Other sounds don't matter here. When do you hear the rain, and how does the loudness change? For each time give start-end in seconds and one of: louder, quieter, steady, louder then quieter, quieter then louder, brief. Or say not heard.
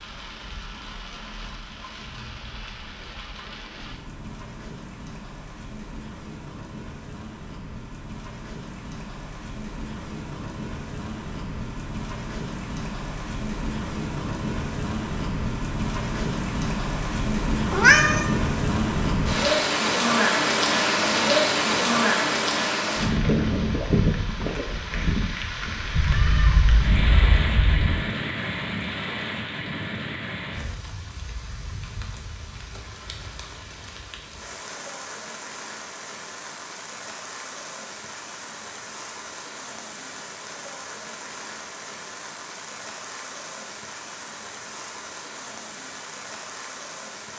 0.0-47.3 louder then quieter.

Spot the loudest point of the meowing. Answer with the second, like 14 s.
18 s.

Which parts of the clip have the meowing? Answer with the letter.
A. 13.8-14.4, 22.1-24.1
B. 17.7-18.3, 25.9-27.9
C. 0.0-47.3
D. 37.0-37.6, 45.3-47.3
B.